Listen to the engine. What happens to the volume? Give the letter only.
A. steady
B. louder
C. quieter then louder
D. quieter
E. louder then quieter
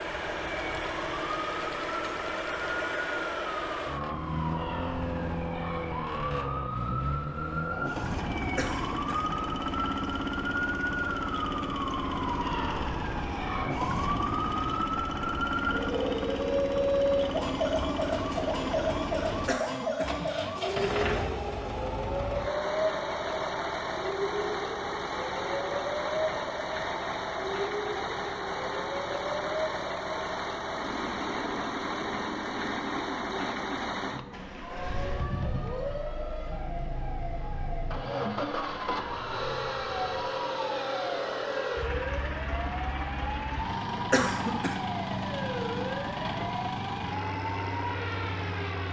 A.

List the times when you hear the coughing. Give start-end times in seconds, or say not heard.
8.6-9.4, 19.4-20.4, 44.1-44.8.